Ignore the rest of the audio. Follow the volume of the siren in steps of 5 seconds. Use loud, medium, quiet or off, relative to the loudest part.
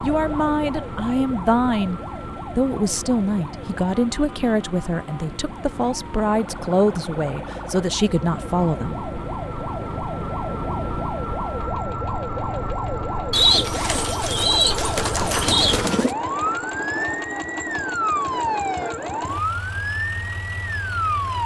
medium, medium, loud, loud, loud.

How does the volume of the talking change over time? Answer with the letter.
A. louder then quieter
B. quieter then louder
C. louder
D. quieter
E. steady
E.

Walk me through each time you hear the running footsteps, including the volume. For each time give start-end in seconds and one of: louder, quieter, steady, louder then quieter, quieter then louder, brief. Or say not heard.
not heard.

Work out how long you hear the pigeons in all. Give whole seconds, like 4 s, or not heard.
3 s.